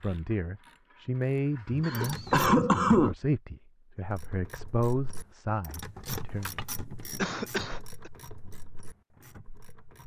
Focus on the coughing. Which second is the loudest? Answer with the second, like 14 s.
3 s.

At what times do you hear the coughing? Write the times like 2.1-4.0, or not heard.
1.8-3.1, 7.2-8.1.